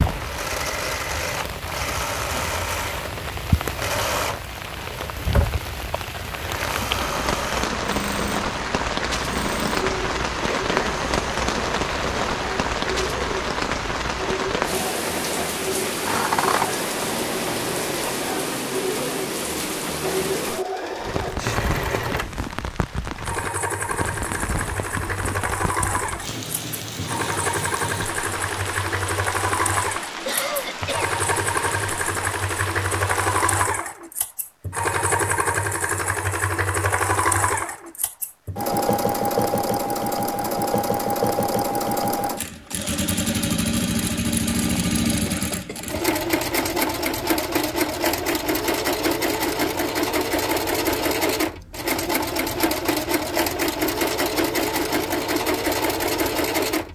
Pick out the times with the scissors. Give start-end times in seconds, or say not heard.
16.1-16.7.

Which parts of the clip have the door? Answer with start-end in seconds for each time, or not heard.
not heard.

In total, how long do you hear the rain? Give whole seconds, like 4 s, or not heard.
34 s.